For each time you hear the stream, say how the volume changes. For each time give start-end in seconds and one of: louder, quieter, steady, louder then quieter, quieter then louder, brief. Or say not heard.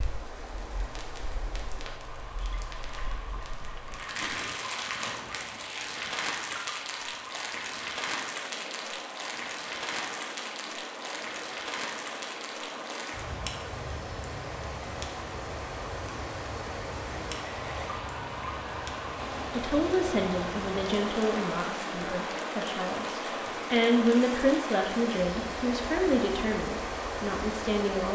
0.0-28.0 louder.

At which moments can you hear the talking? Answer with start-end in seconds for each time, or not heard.
19.5-28.0.